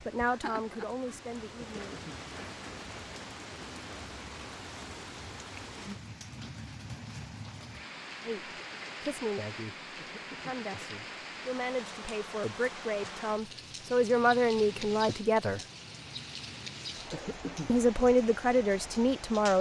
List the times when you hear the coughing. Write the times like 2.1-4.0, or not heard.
1.6-2.2, 9.9-10.9, 17.1-17.8.